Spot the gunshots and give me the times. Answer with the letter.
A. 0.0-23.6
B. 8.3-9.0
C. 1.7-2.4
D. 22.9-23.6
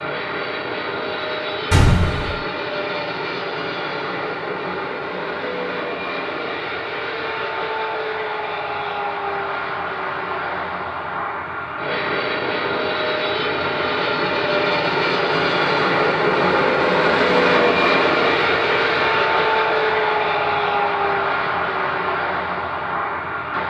C.